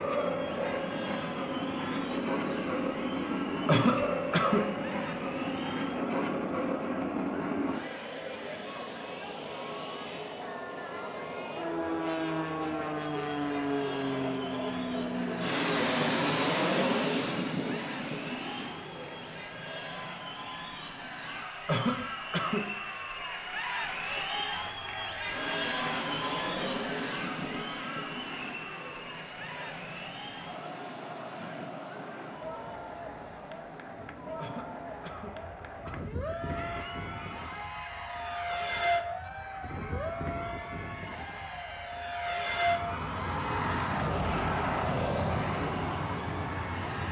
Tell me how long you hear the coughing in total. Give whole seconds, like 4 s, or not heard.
4 s.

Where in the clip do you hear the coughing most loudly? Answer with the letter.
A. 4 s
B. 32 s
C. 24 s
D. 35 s
A.